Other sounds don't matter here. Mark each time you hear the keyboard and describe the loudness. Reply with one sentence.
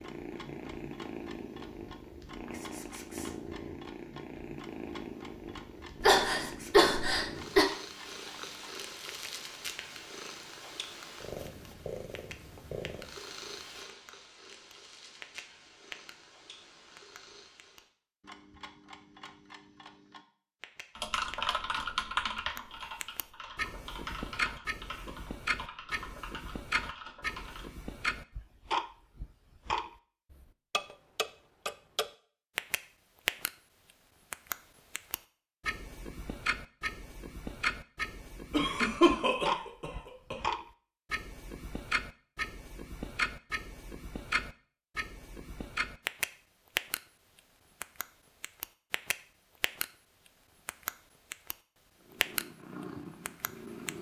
The keyboard can be heard from 20.9 to 27.6 s, getting quieter.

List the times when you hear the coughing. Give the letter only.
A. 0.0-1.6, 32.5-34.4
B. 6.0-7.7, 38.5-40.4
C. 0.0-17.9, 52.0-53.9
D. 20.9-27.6
B.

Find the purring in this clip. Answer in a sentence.
You can hear the purring from 0.0 to 17.9 s and from 52.0 to 53.9 s.